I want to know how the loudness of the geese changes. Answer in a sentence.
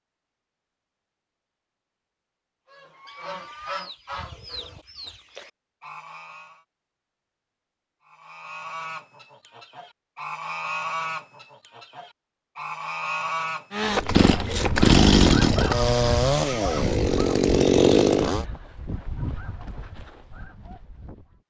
The volume of the geese goes up, then down.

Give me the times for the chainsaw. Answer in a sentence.
The chainsaw can be heard from 13.7 to 18.4 s.